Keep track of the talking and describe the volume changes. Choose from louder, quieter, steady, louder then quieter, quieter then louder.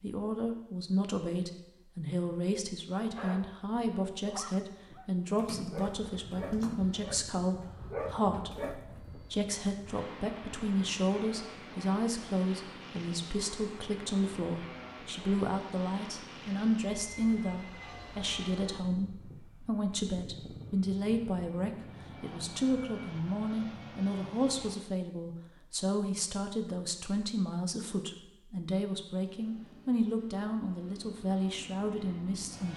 steady.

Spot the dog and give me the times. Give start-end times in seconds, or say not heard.
3.1-9.1.